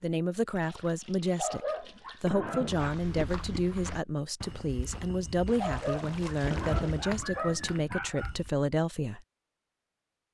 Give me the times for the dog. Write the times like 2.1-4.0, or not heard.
1.4-3.0, 5.5-8.3.